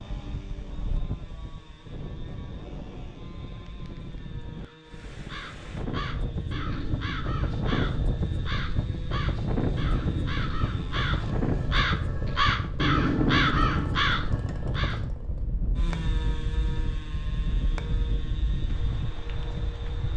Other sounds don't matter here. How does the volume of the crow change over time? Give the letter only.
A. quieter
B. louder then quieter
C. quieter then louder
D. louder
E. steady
D.